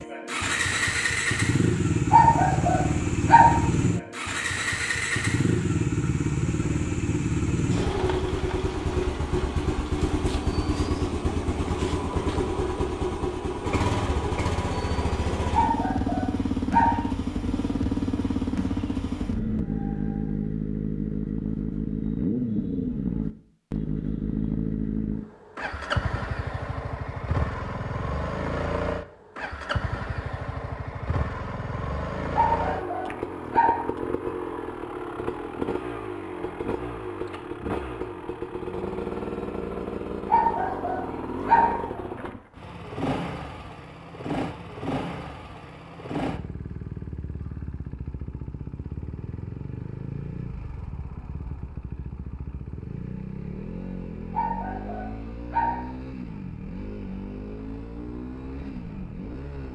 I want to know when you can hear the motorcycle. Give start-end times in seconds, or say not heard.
0.0-59.7.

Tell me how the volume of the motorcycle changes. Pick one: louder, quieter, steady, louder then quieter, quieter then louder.
quieter.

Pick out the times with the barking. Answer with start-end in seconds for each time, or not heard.
2.1-3.6, 15.5-17.1, 32.4-33.9, 40.2-41.9, 54.3-55.9.